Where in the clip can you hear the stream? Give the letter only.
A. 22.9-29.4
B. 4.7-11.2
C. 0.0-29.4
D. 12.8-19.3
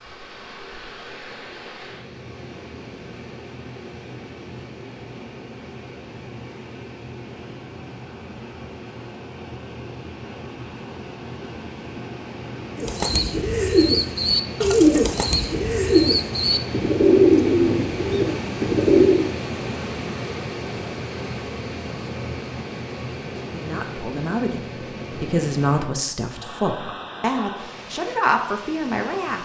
C.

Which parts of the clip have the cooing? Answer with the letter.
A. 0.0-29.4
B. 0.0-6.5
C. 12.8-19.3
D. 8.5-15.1
C.